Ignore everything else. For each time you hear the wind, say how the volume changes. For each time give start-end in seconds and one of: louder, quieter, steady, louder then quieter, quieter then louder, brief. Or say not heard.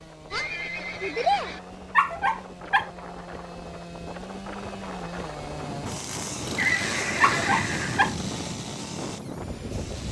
0.0-10.0 louder.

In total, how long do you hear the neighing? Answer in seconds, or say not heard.
3 s.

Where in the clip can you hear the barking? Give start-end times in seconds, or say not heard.
1.9-2.9, 7.2-8.2.